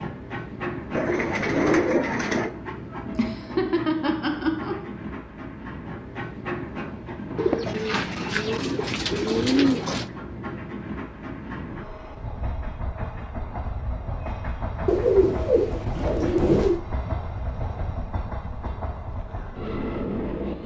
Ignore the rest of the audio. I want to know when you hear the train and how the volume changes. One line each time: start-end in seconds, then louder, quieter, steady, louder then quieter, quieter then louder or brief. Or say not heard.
0.0-20.6 steady.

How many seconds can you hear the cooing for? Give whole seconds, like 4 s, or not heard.
6 s.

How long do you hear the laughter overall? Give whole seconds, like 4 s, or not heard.
2 s.